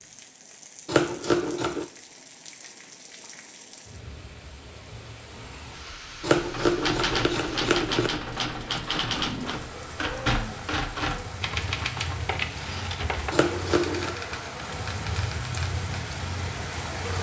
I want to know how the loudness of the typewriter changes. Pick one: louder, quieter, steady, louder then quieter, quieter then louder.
quieter.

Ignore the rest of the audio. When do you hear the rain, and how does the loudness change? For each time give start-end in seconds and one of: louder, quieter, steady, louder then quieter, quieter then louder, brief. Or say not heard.
0.0-17.1 louder.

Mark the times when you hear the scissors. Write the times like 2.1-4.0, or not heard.
0.8-1.9, 6.2-8.1, 13.3-14.2.